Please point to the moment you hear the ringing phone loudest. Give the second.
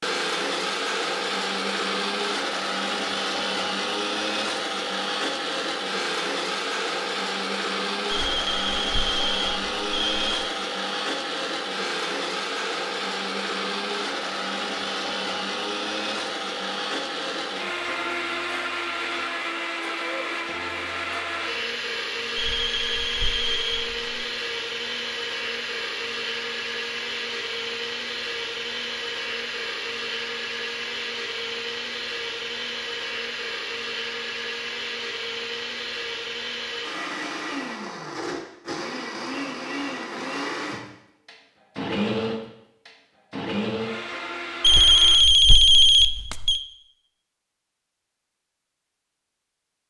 46 s.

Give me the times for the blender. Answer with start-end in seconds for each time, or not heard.
0.0-45.2.